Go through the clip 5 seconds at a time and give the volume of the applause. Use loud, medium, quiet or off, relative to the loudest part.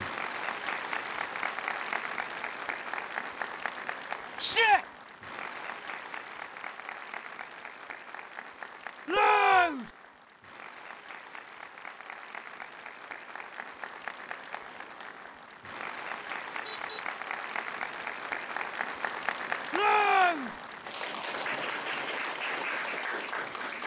loud, medium, medium, loud, loud.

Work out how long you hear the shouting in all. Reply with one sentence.
The shouting can be heard for 2 seconds in total.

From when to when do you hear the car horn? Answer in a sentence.
You can hear the car horn from 9.1 to 9.8 s and from 16.6 to 17.1 s.